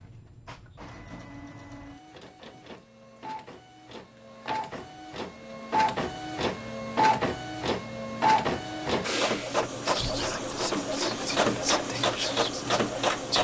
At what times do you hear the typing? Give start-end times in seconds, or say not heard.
not heard.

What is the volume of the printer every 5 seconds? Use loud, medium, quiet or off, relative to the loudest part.
quiet, loud, loud.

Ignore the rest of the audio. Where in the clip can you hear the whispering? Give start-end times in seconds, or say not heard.
9.8-13.3.